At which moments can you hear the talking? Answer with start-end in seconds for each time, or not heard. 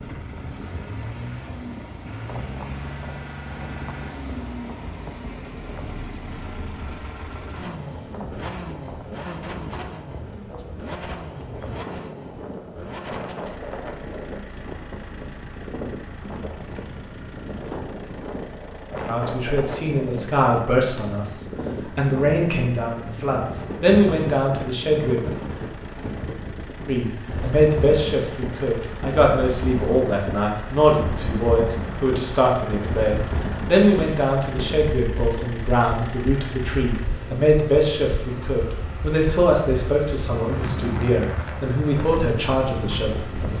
19.1-25.2, 26.9-43.5.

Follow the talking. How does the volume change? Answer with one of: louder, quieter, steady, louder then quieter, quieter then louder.
steady.